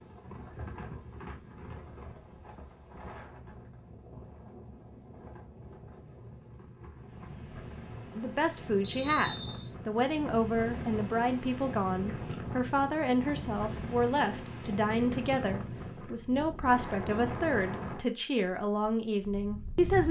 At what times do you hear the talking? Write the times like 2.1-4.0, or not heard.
8.2-20.0.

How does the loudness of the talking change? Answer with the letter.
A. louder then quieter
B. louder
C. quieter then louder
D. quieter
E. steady
E.